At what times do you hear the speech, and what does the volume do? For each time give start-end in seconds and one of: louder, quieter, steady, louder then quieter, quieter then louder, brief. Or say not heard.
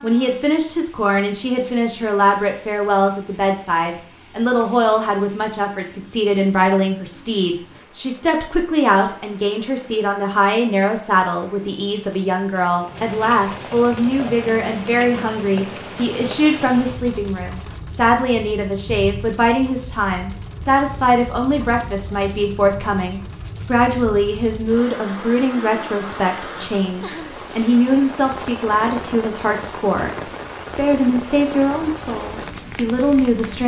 0.0-33.6 steady.